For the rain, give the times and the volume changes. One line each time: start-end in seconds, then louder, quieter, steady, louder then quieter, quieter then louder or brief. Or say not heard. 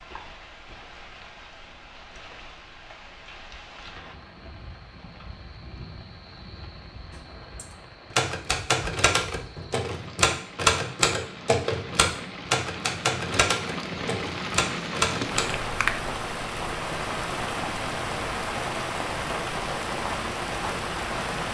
0.0-21.4 louder.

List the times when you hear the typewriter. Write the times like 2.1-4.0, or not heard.
7.1-15.6.